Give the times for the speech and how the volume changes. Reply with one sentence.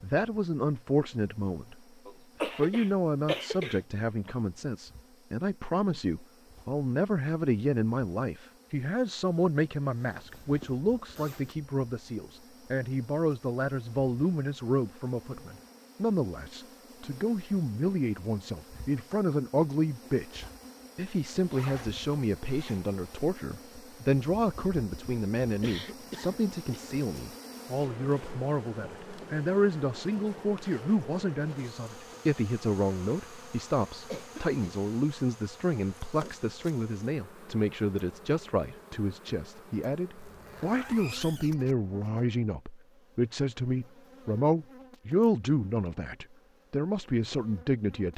You can hear the speech briefly from 0.0 to 1.8 s; and from 2.4 to 48.1 s, at a steady volume.